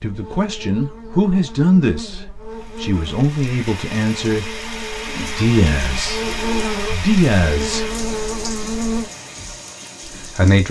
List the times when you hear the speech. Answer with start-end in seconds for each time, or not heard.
0.0-8.0, 10.2-10.6.